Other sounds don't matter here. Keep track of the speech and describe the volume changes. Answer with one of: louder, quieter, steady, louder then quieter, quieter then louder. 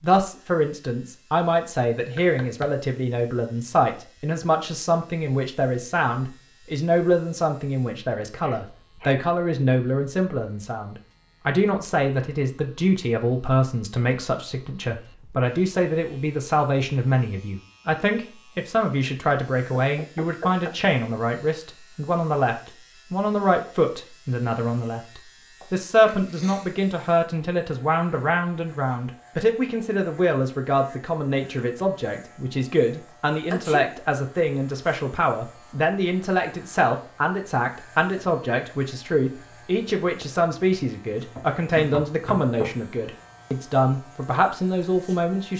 steady.